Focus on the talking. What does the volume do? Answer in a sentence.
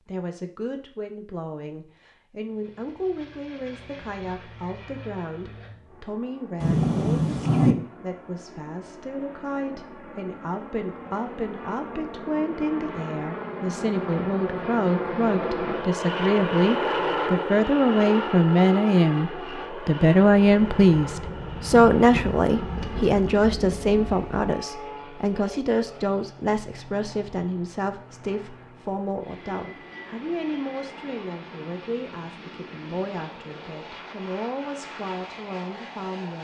The volume of the talking goes up, then down.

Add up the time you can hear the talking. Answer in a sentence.
You can hear the talking for 36 seconds altogether.